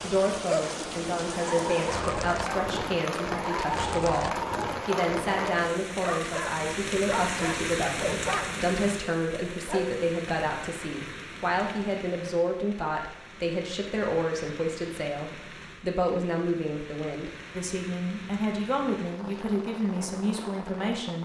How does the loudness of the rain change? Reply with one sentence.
The loudness of the rain goes down.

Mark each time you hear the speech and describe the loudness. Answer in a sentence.
The speech can be heard from 0.0 to 21.2 s, at a steady volume.